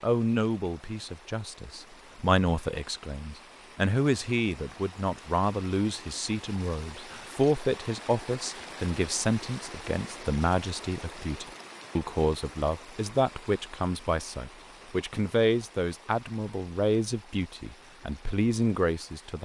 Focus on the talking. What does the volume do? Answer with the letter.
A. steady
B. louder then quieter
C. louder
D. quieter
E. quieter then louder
A.